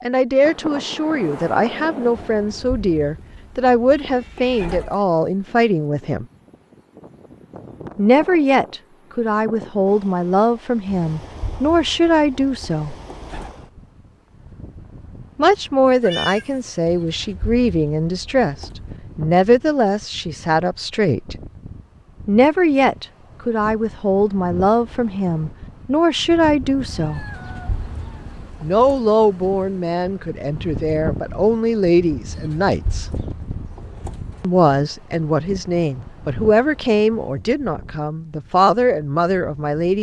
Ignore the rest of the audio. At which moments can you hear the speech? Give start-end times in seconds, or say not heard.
0.0-6.2, 8.0-12.9, 15.3-21.4, 22.2-27.2, 28.6-33.1, 34.4-39.9.